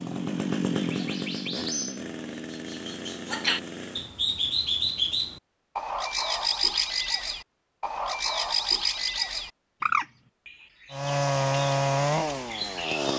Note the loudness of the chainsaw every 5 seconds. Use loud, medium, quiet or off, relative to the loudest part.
medium, off, loud.